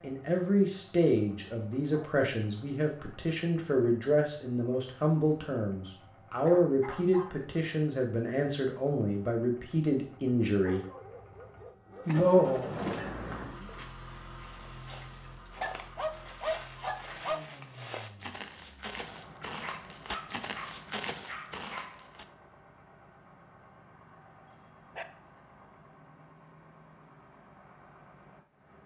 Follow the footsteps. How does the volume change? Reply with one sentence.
The volume of the footsteps goes up.